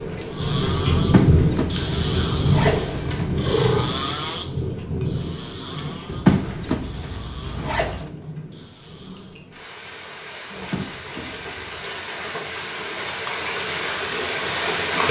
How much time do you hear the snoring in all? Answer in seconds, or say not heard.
9 s.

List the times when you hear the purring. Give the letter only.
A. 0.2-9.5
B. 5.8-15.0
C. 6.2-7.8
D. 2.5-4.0
D.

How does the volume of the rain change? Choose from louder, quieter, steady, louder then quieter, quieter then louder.
quieter then louder.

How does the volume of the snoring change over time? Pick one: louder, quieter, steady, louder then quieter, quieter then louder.
quieter.